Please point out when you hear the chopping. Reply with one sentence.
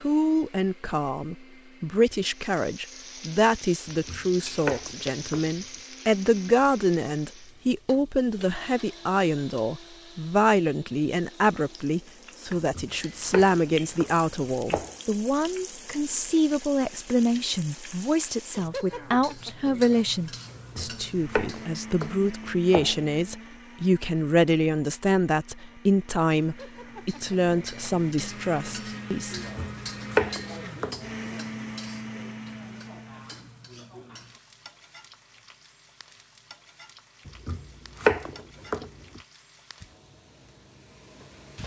You can hear the chopping from 3.9 to 5.5 s, from 12.6 to 14.9 s, from 20.6 to 23.1 s, from 29.4 to 31.0 s and from 37.2 to 39.2 s.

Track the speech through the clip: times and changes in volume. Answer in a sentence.
You can hear the speech from 0.0 to 29.4 s, at a steady volume.